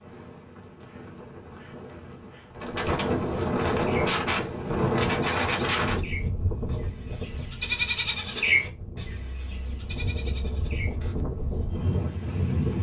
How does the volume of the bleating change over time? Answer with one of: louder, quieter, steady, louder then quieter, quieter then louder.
louder then quieter.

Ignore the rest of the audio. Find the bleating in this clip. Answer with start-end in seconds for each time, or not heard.
3.6-11.7.